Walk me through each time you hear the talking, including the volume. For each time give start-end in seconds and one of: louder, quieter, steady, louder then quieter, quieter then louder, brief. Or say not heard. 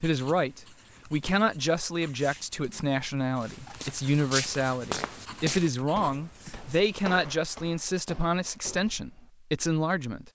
0.0-10.3 steady.